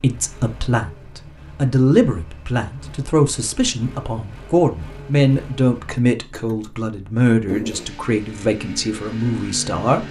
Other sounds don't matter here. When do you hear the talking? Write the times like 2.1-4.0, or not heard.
0.0-10.0.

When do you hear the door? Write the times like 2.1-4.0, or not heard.
not heard.